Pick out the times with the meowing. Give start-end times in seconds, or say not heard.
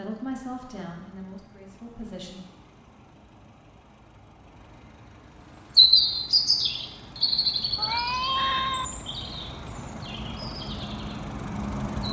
7.8-8.8.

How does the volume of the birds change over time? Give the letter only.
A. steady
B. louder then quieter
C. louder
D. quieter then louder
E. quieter
E.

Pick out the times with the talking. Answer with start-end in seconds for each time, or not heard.
0.0-2.4.